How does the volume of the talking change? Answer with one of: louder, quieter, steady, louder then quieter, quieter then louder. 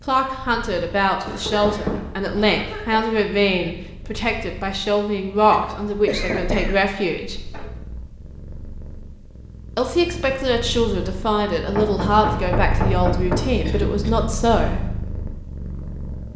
steady.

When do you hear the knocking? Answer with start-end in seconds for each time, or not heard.
1.2-2.1, 6.1-7.7, 11.8-13.6.